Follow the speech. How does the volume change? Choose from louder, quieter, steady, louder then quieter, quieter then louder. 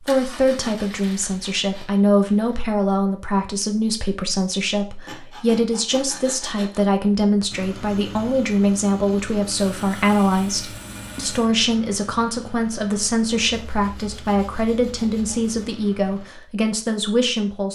steady.